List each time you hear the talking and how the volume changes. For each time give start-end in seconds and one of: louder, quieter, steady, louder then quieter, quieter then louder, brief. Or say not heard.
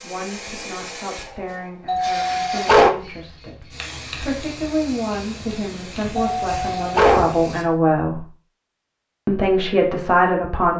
0.0-8.2 louder
9.2-10.7 brief.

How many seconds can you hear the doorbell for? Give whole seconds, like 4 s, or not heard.
2 s.